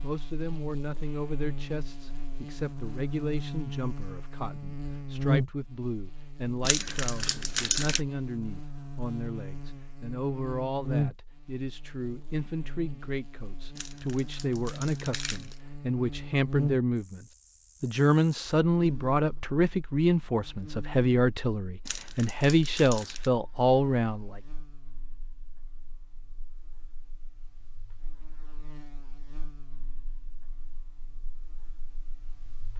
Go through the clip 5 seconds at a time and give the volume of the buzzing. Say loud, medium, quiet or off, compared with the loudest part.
medium, loud, loud, loud, quiet, quiet, quiet.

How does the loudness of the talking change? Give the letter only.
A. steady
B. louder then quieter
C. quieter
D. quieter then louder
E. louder
E.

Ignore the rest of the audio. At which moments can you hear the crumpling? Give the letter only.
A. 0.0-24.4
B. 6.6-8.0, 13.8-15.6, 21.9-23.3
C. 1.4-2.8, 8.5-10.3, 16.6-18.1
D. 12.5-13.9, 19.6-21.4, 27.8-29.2
B.